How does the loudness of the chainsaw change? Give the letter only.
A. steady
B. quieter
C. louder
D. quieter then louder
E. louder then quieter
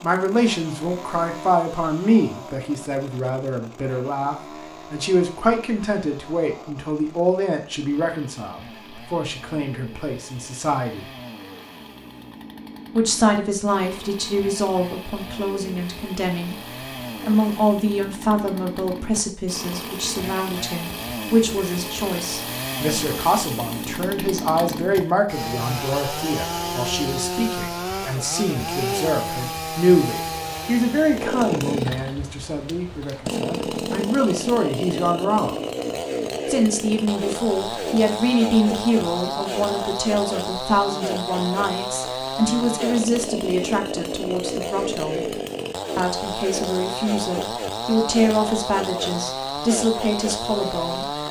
C.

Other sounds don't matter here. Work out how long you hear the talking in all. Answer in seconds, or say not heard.
47 s.